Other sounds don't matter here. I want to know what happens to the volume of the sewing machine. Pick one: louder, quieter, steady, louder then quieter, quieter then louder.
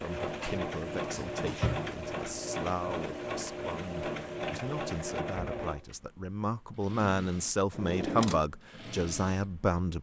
quieter.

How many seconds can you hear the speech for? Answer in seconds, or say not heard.
10 s.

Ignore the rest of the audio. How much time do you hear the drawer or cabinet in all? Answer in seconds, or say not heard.
2 s.